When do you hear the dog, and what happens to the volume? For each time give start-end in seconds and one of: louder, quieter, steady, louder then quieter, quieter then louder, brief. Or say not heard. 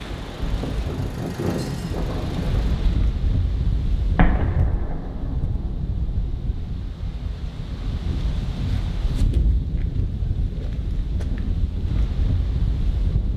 not heard.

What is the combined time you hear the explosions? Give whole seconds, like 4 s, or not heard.
3 s.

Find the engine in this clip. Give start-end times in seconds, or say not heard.
0.2-2.8.